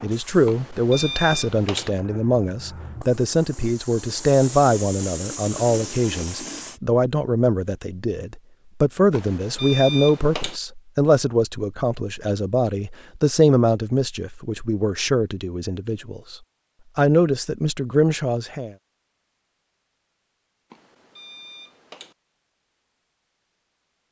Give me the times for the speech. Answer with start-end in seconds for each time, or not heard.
0.0-16.4, 16.9-18.8.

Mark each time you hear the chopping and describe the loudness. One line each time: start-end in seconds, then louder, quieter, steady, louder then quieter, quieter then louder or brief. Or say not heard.
not heard.